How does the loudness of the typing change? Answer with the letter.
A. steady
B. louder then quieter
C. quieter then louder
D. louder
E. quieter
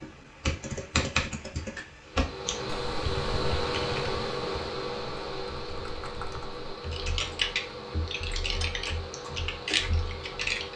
C.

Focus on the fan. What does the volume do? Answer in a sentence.
The volume of the fan goes down.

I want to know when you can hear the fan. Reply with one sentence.
You can hear the fan from 2.0 to 10.7 s.